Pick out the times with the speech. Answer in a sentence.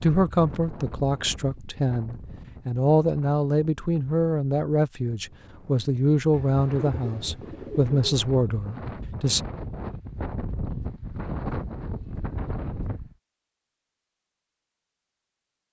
The speech can be heard from 0.0 to 9.4 s.